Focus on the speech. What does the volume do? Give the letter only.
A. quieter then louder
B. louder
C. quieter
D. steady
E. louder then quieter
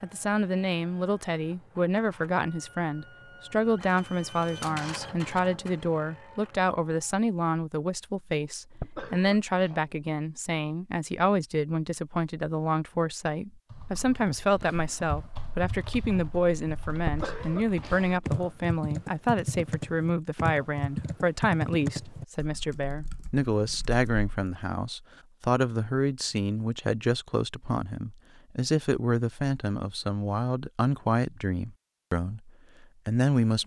D.